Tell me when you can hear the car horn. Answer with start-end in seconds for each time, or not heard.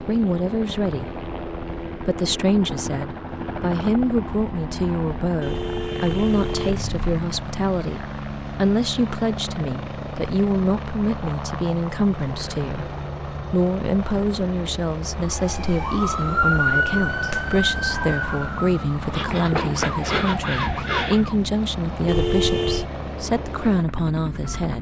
5.4-7.0, 22.1-22.9.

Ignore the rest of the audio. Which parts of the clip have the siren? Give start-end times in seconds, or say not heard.
15.2-21.4.